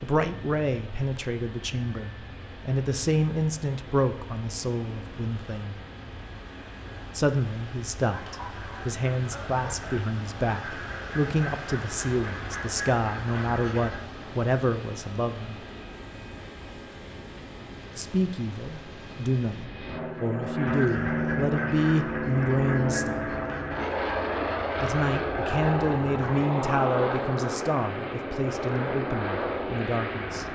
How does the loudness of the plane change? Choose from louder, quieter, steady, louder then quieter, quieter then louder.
louder.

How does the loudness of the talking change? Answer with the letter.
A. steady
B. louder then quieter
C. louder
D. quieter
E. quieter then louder
A.